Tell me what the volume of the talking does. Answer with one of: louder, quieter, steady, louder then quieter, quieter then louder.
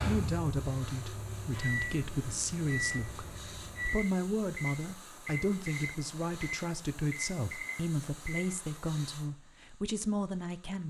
steady.